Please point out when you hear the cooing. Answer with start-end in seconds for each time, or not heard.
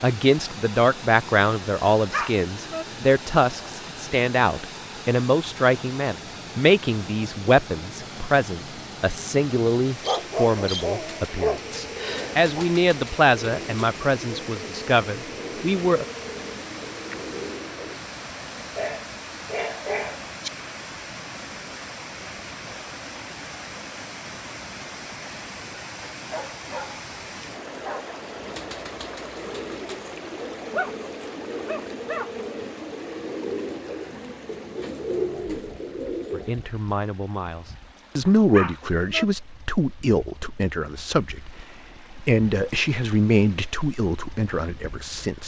9.9-18.1, 28.2-36.6.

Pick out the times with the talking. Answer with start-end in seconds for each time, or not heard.
0.0-16.1, 36.3-41.5, 42.1-45.4.